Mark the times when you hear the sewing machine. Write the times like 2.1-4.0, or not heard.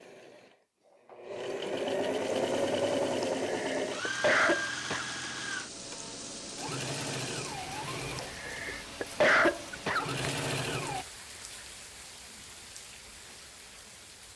0.0-11.1.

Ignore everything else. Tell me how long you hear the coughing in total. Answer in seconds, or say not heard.
4 s.